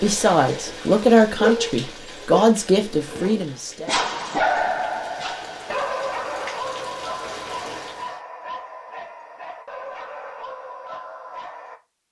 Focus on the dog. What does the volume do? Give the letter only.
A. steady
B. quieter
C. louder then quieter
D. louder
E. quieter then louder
C.